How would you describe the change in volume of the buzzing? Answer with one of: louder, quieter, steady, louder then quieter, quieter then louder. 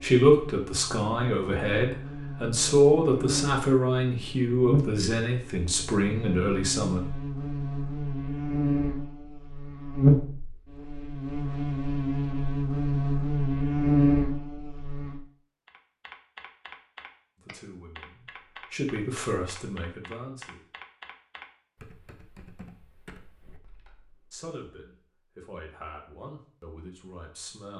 louder.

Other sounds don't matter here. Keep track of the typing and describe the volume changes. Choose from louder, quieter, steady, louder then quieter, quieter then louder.
quieter.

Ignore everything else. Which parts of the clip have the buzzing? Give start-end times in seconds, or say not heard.
0.0-15.2.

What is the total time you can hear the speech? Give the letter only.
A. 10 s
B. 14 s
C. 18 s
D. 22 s
B.